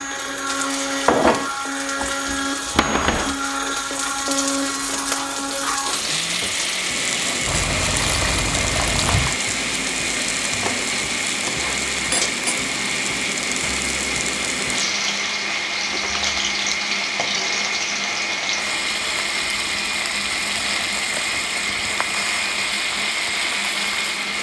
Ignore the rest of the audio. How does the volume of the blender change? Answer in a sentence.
The loudness of the blender stays about the same.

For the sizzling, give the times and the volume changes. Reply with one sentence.
The sizzling can be heard from 0.0 to 24.3 s, at a steady volume.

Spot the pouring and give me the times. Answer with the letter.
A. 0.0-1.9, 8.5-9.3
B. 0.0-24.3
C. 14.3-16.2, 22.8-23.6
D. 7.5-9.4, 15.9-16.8
D.